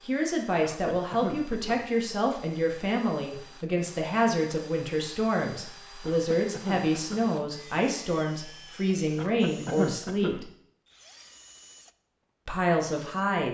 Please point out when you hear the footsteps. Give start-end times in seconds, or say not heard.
not heard.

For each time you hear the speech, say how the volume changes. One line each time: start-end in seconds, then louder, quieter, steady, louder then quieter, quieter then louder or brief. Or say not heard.
0.1-10.5 steady
12.4-13.5 brief.